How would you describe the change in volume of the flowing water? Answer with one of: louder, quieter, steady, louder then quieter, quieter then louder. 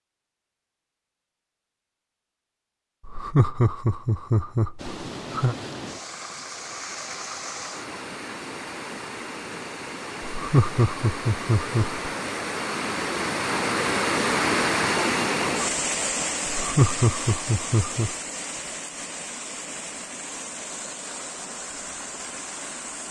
louder then quieter.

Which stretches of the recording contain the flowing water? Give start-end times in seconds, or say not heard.
4.8-23.0.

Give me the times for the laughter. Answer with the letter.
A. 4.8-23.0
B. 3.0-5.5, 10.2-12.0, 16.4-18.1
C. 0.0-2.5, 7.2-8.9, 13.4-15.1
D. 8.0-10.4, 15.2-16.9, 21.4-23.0
B.